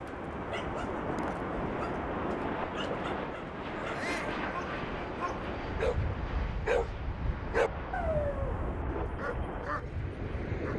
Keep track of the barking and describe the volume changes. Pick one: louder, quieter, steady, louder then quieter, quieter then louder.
louder then quieter.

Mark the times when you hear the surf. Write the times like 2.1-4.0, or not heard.
0.0-10.7.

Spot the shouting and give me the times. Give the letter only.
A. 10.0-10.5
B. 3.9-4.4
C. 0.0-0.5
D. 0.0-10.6
B.